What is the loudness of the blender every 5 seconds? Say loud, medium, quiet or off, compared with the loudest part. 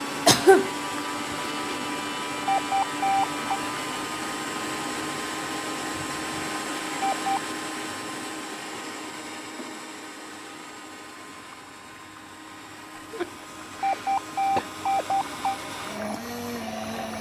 loud, loud, medium, loud.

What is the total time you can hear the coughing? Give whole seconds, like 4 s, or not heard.
2 s.